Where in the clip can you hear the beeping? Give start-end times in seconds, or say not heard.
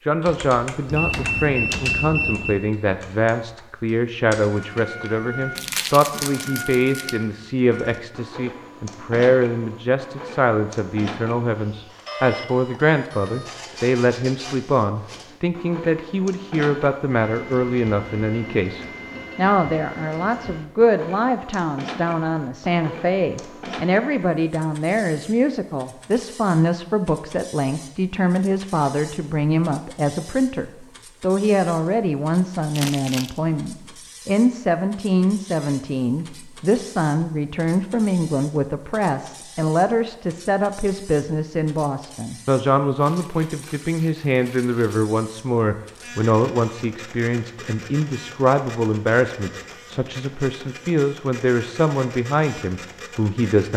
0.8-2.6.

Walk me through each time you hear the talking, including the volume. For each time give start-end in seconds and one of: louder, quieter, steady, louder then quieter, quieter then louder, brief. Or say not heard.
0.1-53.7 steady.